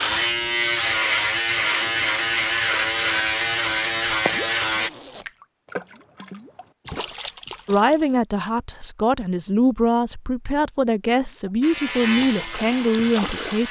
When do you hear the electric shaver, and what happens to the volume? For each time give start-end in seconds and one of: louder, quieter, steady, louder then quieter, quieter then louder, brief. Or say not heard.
0.0-4.9 steady
11.6-13.6 brief.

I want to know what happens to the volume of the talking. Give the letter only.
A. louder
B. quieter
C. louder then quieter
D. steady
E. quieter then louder
D.